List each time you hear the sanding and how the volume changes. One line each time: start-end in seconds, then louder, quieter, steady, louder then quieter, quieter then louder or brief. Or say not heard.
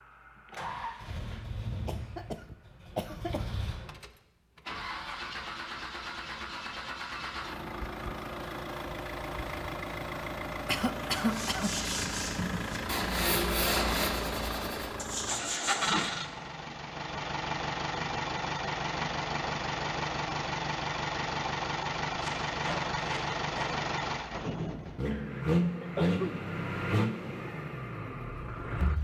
11.2-16.1 louder then quieter.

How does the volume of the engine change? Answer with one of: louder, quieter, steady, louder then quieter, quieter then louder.
louder.